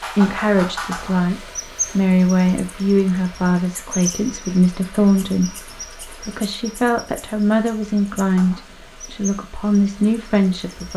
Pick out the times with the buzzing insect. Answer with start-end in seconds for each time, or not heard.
not heard.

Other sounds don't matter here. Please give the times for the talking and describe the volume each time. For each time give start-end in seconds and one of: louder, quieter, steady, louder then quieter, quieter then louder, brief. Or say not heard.
0.1-10.9 steady.